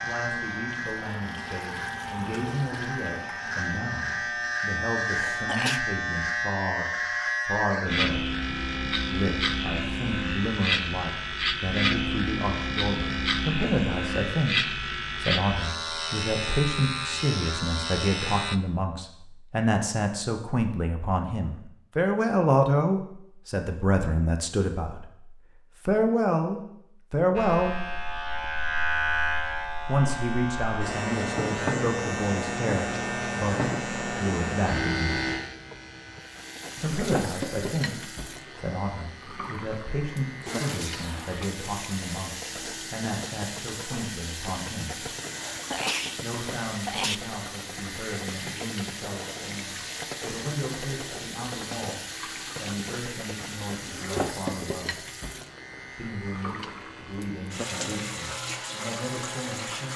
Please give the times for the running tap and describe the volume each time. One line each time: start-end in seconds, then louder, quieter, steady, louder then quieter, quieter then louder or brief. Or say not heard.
0.0-4.8 louder then quieter
36.2-59.9 steady.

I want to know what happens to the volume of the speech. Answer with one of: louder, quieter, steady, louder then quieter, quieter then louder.
louder then quieter.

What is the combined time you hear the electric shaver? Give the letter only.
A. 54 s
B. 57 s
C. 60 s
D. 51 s
D.